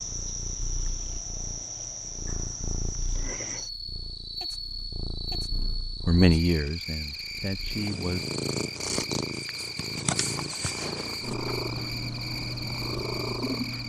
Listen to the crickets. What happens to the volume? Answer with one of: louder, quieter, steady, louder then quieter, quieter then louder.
steady.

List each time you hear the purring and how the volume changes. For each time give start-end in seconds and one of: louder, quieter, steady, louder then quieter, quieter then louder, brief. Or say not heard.
0.0-13.8 louder.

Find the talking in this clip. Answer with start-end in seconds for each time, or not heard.
5.6-8.2.